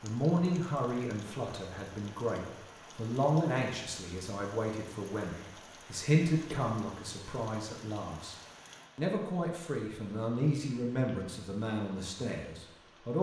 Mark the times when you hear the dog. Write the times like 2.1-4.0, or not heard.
not heard.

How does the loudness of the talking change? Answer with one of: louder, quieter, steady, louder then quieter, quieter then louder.
steady.